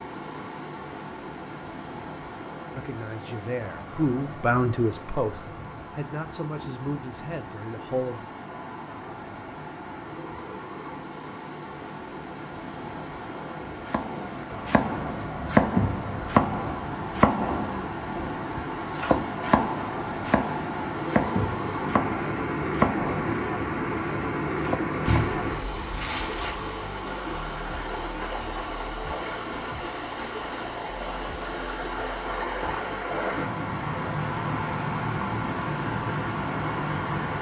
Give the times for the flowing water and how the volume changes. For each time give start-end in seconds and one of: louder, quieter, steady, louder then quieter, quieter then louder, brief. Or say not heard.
0.0-37.3 louder.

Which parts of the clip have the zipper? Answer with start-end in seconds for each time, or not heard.
25.1-26.6.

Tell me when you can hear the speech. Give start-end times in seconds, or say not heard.
2.8-8.2.